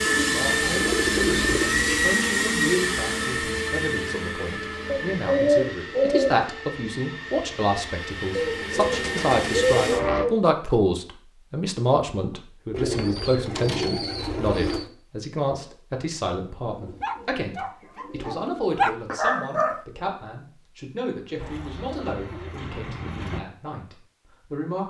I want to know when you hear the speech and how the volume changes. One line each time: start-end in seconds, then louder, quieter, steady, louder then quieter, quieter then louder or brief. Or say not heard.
0.0-24.8 louder then quieter.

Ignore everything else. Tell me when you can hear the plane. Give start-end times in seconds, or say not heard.
0.0-10.2.